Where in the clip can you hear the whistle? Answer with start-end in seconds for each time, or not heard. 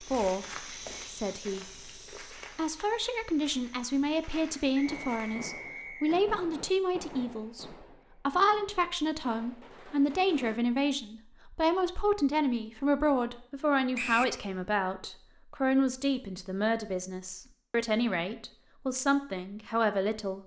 4.8-6.2, 13.9-14.3.